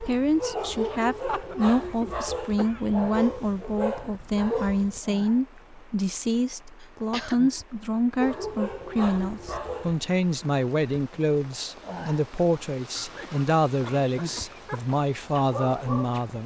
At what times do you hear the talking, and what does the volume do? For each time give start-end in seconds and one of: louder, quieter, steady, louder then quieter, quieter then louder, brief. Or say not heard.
0.0-16.4 steady.